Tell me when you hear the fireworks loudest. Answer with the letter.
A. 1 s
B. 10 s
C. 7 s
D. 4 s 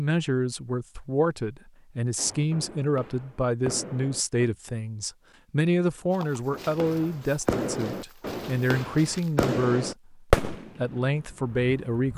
B.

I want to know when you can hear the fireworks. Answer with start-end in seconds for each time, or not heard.
2.1-4.5, 6.5-12.1.